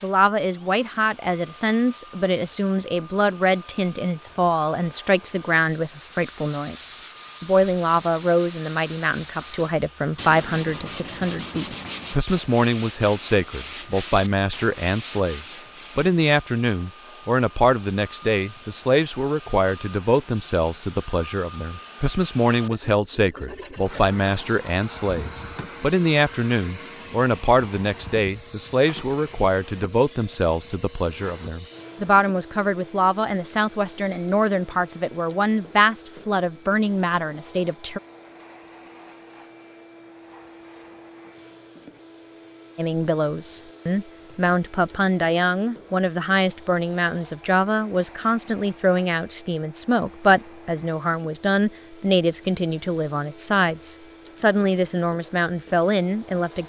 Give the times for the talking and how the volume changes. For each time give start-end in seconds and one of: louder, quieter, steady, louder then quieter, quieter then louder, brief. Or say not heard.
0.0-38.0 steady
42.8-56.6 steady.